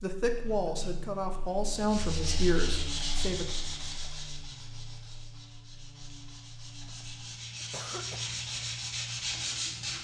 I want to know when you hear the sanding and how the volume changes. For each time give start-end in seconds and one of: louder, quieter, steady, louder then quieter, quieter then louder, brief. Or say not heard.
1.7-9.9 quieter then louder.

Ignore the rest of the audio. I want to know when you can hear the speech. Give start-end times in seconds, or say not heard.
0.0-3.5.